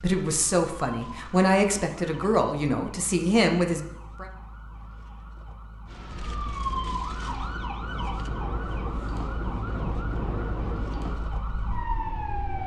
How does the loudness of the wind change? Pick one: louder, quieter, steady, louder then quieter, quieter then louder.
louder then quieter.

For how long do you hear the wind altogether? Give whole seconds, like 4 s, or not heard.
7 s.